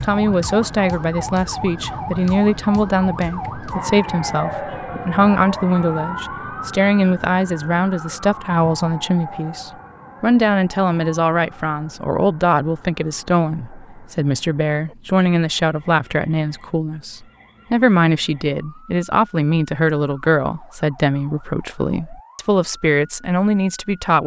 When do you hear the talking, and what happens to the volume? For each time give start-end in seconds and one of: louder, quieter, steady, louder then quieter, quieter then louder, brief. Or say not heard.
0.0-24.2 steady.